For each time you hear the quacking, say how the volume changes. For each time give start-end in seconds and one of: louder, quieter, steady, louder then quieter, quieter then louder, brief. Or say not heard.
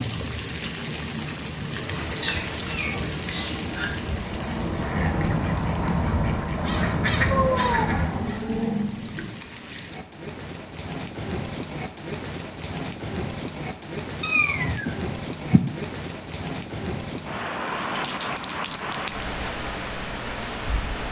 1.6-8.5 louder.